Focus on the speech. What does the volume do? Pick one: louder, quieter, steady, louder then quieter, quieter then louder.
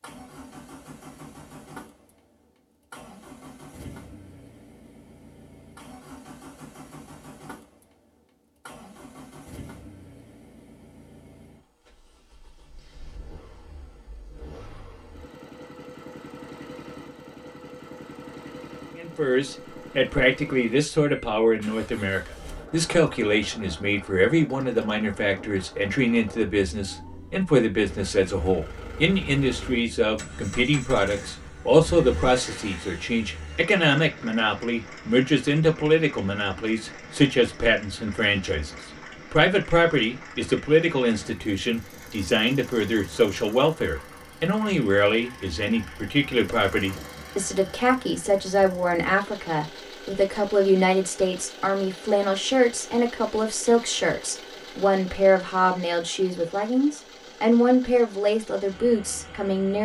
steady.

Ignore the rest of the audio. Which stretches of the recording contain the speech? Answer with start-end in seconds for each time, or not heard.
18.9-59.7.